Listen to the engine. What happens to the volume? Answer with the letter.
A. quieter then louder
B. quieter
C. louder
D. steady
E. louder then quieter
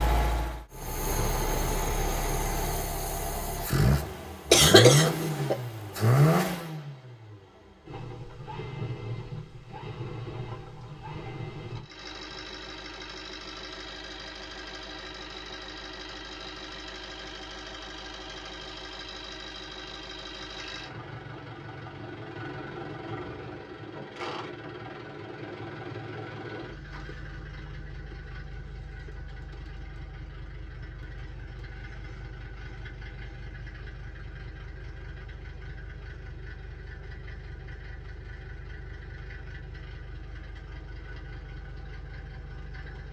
B.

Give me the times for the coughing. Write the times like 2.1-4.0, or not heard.
4.5-5.5.